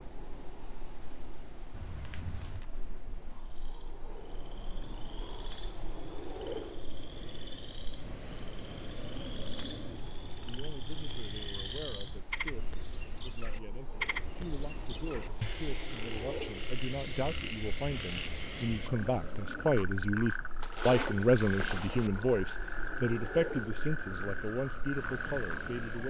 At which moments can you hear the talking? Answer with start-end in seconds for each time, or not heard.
10.4-26.0.